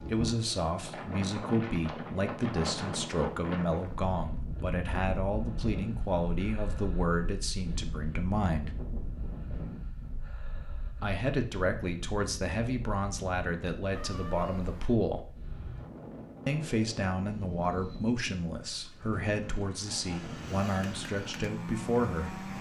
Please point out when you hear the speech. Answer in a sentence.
The speech can be heard from 0.0 to 8.7 s, from 11.0 to 15.2 s and from 16.4 to 22.5 s.